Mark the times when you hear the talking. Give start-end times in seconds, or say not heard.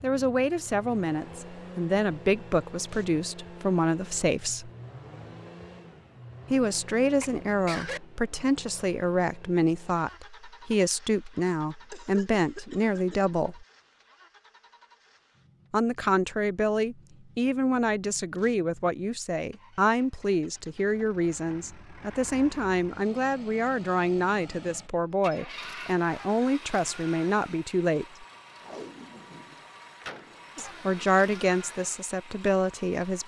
0.0-4.7, 6.5-13.7, 15.7-28.2, 30.6-33.2.